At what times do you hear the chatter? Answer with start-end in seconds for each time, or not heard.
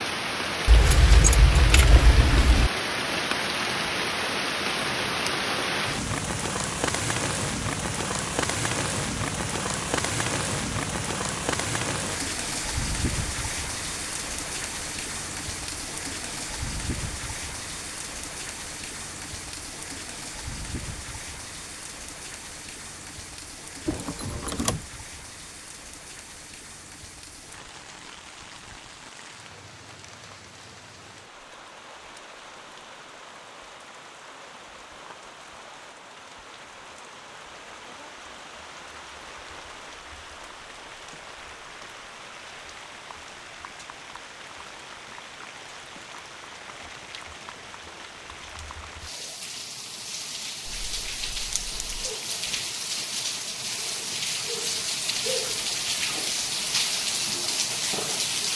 not heard.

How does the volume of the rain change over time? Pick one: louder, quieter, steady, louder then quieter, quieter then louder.
quieter then louder.